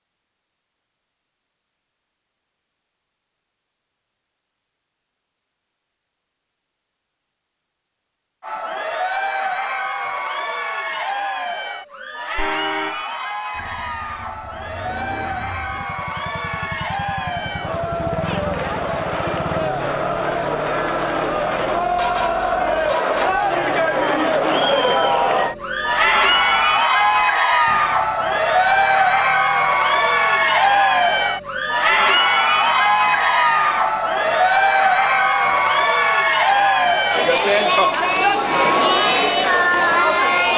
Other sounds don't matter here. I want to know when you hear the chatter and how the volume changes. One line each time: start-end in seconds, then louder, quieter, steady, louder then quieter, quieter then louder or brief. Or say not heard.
8.4-40.5 louder.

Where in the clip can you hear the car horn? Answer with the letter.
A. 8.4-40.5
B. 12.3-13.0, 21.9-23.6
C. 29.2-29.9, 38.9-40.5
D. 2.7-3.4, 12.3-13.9
B.